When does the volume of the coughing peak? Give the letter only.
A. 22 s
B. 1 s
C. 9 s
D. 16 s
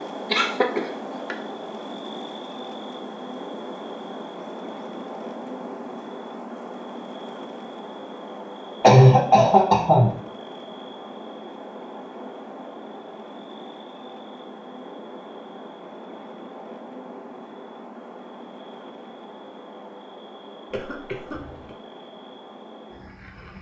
C.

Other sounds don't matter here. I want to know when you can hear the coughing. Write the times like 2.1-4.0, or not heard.
0.3-1.4, 8.8-10.2, 20.7-21.8.